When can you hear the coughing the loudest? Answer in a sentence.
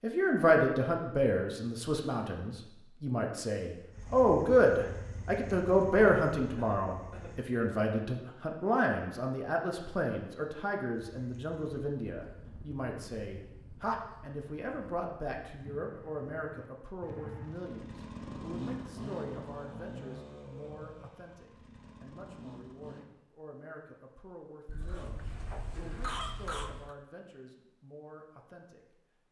The loudest moment of the coughing is at 26 seconds.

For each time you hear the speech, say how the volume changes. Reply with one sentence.
The speech can be heard from 0.0 to 29.2 s, getting quieter.